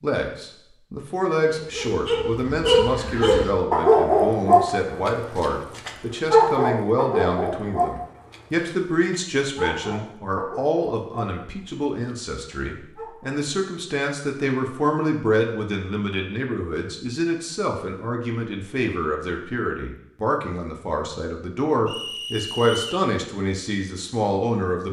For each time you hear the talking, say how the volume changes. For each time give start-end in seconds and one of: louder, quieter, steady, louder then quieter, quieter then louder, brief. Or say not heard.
0.0-24.8 steady.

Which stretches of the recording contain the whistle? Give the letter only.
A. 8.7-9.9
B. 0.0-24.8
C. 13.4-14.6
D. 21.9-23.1
D.